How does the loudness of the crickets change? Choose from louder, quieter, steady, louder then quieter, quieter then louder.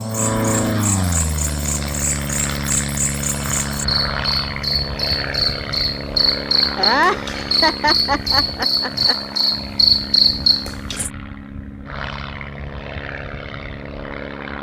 louder.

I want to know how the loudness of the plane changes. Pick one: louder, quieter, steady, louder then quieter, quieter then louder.
quieter.